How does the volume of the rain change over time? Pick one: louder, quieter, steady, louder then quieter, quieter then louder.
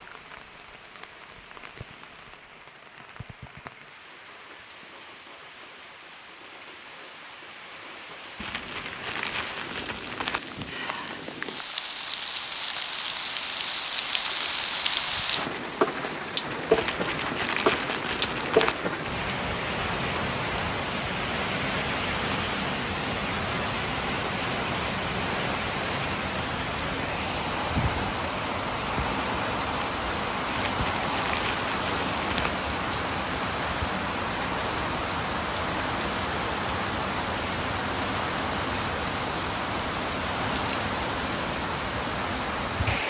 louder.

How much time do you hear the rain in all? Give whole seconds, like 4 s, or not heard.
43 s.